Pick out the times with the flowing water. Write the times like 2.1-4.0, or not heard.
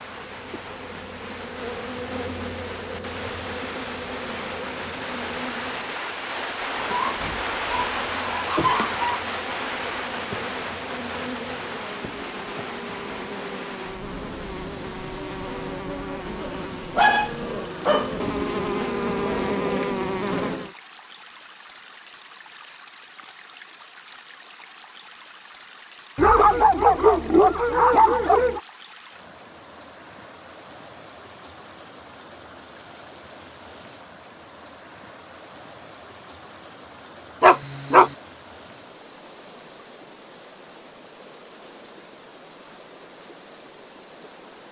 0.0-44.6.